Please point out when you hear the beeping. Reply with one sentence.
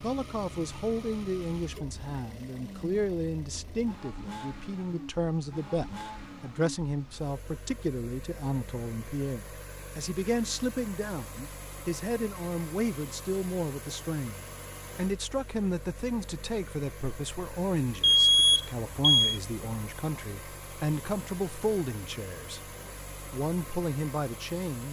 You can hear the beeping from 18.0 to 19.4 s.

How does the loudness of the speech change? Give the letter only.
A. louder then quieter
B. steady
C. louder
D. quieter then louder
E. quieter
B.